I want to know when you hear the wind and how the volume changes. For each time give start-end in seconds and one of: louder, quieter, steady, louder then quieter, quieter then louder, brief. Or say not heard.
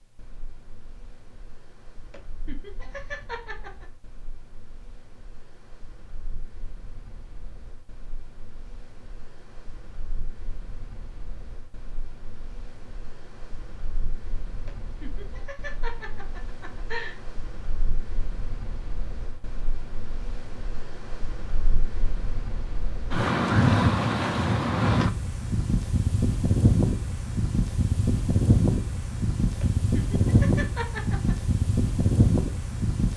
0.0-33.1 louder.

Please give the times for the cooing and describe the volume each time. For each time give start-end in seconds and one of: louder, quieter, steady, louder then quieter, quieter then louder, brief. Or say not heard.
not heard.